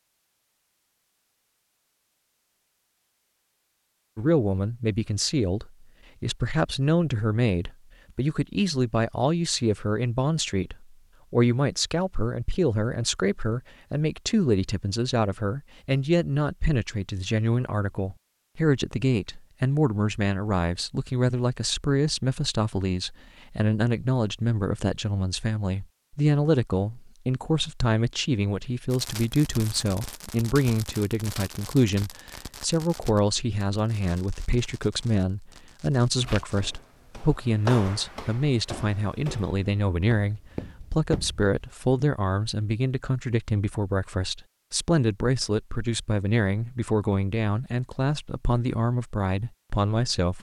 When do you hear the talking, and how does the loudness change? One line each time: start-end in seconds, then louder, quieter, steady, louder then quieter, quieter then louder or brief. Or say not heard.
4.2-50.3 steady.